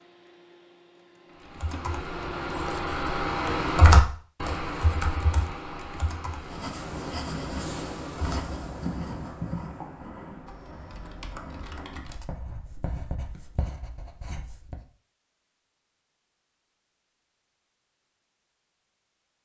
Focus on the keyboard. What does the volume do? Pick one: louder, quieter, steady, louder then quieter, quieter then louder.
louder then quieter.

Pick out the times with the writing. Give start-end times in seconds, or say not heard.
6.2-14.8.